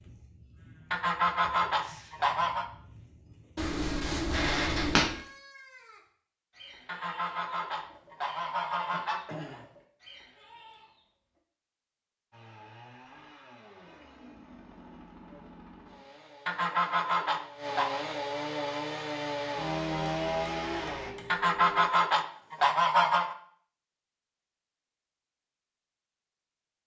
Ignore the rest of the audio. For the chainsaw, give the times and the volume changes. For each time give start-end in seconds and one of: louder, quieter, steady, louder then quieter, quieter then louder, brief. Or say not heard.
12.3-21.1 louder.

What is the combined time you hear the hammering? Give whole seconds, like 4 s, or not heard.
4 s.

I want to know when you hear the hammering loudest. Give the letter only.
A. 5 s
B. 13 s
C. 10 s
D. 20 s
A.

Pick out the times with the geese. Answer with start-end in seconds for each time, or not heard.
0.9-2.6, 6.8-9.7, 16.4-18.0, 21.3-23.4.